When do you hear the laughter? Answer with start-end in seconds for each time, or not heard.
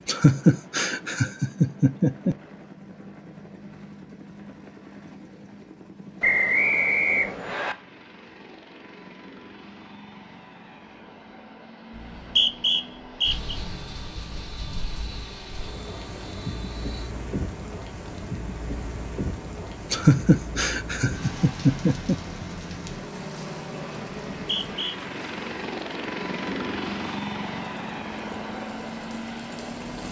0.1-2.4, 19.9-22.1.